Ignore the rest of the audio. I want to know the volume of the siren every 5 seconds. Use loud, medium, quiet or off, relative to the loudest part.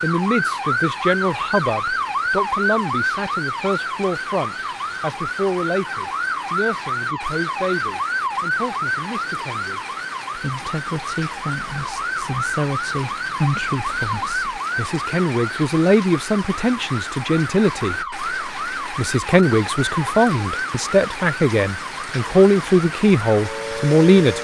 loud, loud, loud, medium, medium.